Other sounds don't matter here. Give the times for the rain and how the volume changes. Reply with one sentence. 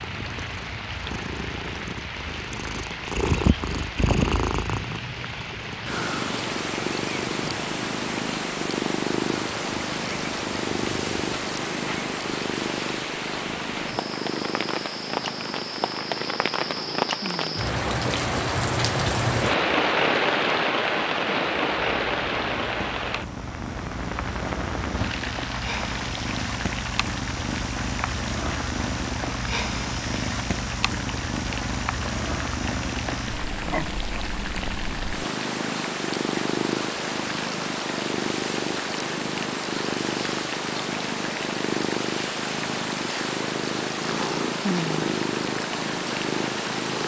The rain can be heard from 0.0 to 47.0 s, getting louder then quieter.